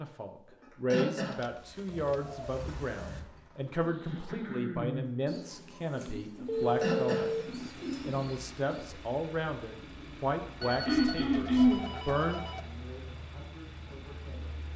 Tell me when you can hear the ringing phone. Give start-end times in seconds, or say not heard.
1.3-2.2, 6.0-7.5, 10.6-12.6.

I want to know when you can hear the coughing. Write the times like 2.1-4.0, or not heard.
0.8-1.4, 6.8-7.3, 10.8-11.8.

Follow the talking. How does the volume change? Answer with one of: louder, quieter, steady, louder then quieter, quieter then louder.
quieter.